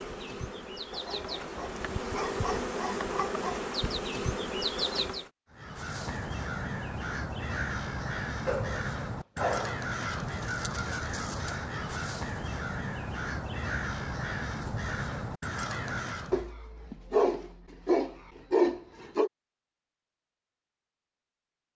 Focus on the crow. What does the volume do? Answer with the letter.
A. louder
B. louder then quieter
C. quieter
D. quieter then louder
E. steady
E.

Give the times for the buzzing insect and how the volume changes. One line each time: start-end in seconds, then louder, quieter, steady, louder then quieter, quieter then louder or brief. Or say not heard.
0.0-5.3 louder.